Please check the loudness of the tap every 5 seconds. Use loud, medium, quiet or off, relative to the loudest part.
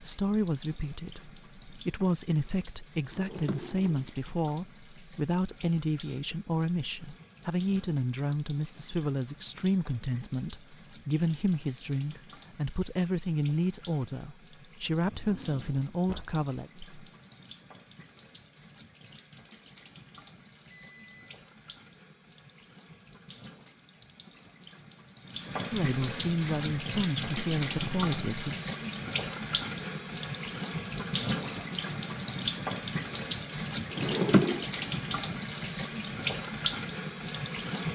quiet, quiet, quiet, quiet, quiet, loud, loud, loud.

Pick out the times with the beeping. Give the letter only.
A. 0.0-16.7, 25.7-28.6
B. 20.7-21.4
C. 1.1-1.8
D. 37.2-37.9
B.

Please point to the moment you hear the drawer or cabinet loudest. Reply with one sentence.
The volume of the drawer or cabinet peaks at 34 seconds.